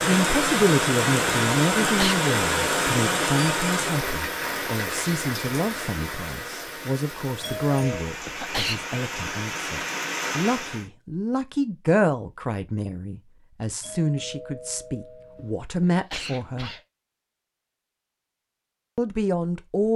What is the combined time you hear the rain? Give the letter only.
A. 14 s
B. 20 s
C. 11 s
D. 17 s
C.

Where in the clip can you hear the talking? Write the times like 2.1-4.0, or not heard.
0.1-16.7, 18.9-19.9.